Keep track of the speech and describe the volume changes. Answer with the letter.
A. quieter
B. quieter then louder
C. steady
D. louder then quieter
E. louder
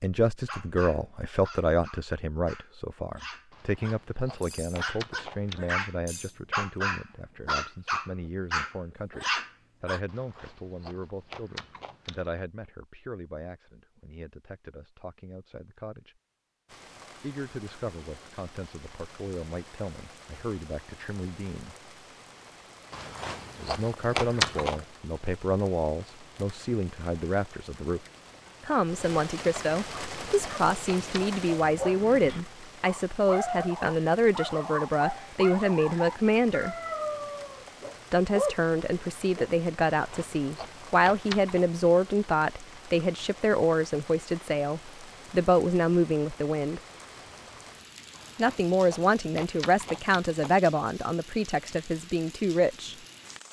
B.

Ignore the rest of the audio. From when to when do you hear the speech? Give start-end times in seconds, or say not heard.
0.0-16.1, 17.2-21.8, 23.6-28.0, 28.6-36.8, 38.1-46.8, 48.4-53.0.